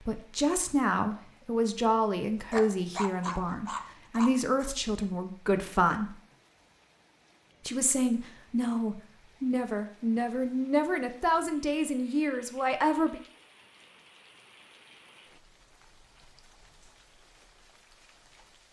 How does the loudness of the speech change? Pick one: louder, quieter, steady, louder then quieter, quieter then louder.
steady.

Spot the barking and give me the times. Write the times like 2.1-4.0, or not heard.
2.5-4.7.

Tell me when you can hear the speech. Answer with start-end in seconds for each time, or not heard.
0.1-6.2, 7.7-13.2.